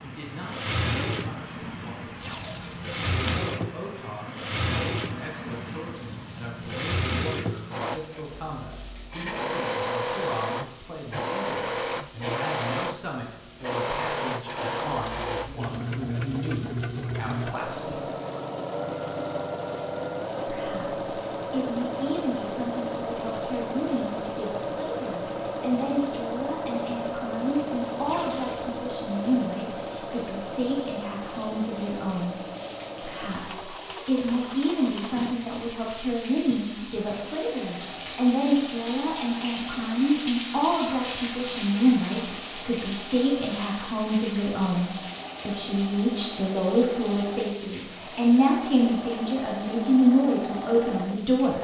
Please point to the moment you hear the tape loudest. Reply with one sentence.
The volume of the tape peaks at 3 seconds.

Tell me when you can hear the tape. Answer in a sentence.
The tape can be heard from 2.1 to 3.4 s and from 28.0 to 28.8 s.